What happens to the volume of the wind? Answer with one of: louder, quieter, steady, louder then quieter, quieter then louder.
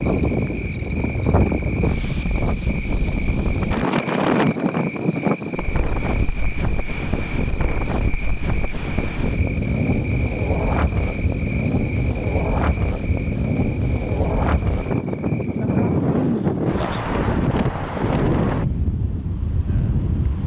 steady.